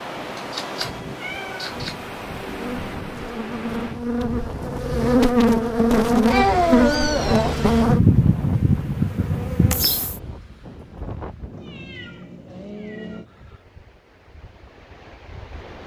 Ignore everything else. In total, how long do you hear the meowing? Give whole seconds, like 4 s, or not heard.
5 s.